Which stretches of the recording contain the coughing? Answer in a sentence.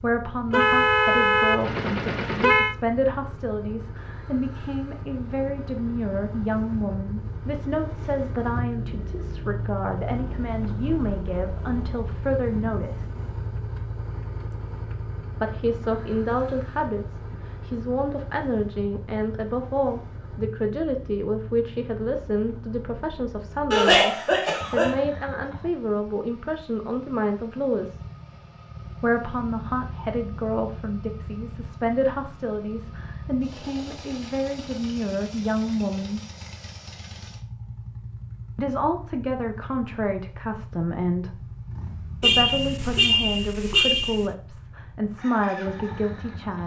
The coughing can be heard from 23.7 to 24.9 s.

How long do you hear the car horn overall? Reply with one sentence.
The car horn can be heard for 4 seconds in total.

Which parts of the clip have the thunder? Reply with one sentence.
The thunder can't be heard in this clip.